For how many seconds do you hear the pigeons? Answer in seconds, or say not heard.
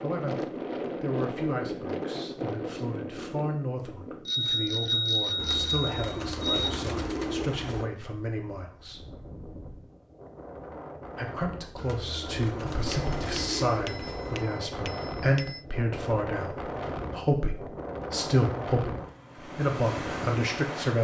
5 s.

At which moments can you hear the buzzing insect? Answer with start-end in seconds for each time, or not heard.
not heard.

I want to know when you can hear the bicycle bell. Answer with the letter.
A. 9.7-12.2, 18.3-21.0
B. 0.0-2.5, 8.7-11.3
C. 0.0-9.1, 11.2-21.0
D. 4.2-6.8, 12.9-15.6
D.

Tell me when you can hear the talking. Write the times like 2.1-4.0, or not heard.
0.0-9.1, 11.2-21.0.